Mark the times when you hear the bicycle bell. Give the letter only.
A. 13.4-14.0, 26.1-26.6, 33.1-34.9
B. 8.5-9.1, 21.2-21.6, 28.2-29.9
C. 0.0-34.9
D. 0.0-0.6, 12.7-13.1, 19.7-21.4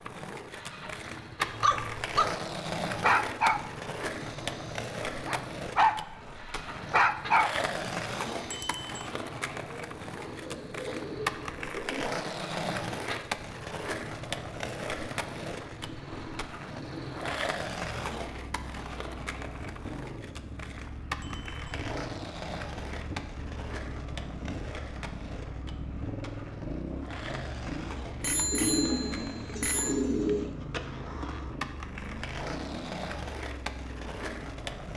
B.